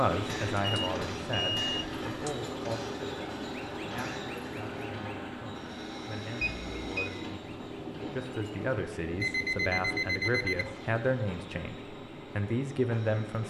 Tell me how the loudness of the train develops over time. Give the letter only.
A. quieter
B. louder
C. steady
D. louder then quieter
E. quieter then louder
A.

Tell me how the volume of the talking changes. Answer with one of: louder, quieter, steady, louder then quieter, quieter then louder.
quieter then louder.